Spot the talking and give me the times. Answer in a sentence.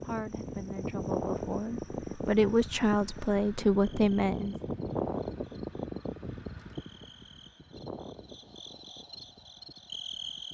You can hear the talking from 0.0 to 4.5 s.